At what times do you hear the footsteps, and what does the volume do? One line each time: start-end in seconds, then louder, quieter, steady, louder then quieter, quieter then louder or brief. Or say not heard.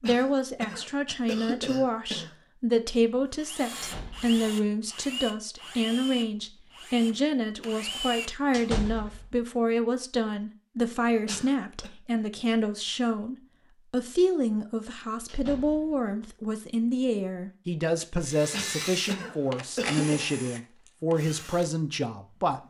not heard.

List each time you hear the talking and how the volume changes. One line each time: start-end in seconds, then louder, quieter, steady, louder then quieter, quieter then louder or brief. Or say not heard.
0.0-22.6 steady.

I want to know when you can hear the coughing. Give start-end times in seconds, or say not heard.
0.0-2.4, 11.2-11.9, 18.5-20.2.